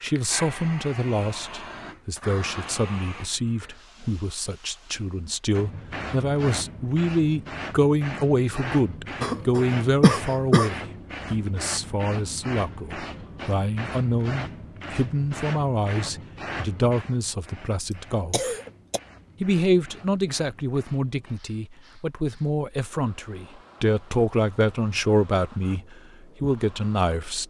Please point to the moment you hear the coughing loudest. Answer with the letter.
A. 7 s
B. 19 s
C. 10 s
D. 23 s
C.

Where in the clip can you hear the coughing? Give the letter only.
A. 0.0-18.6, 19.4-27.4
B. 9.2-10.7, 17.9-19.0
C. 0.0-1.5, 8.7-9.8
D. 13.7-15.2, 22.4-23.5
B.